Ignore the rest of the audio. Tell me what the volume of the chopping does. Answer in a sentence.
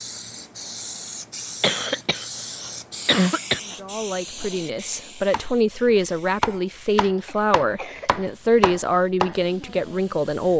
The loudness of the chopping goes down, then up.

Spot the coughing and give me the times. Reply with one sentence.
You can hear the coughing from 1.6 to 3.6 s and from 7.2 to 8.1 s.